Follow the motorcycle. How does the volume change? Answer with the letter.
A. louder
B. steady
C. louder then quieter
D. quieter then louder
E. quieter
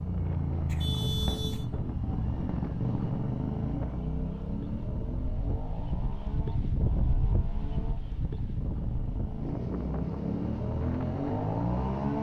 D.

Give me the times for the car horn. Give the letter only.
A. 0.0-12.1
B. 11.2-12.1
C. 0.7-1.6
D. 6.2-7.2
C.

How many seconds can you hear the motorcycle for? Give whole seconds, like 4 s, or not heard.
12 s.